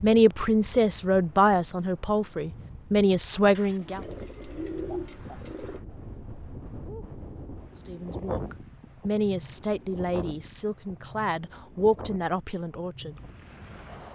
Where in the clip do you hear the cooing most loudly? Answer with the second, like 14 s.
5 s.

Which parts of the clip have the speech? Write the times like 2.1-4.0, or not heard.
0.0-4.0, 7.8-13.2.